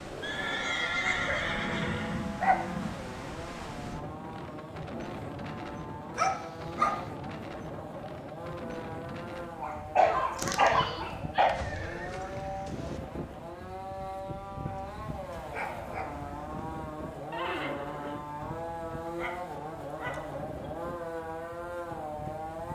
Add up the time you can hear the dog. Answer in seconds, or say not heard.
8 s.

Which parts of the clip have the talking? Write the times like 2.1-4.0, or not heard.
not heard.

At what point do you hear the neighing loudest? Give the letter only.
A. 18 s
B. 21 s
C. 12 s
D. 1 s
D.